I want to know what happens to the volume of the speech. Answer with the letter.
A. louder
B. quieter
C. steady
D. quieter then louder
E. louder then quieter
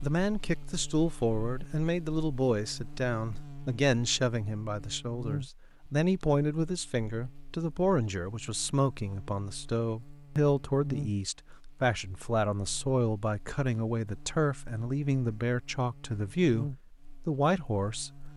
C.